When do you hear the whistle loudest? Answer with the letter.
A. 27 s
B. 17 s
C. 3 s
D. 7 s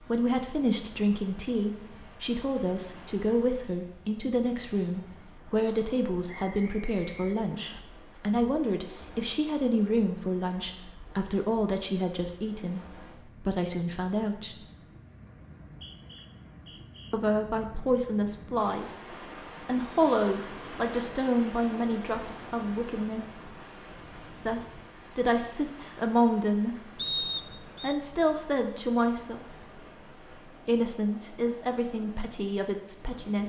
A.